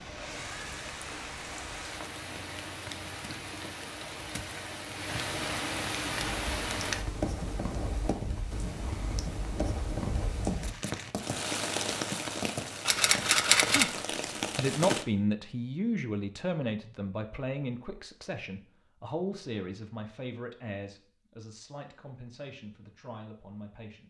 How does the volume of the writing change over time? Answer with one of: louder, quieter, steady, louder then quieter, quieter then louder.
steady.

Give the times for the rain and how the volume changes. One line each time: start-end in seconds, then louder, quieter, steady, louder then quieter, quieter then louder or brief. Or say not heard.
0.0-15.1 louder.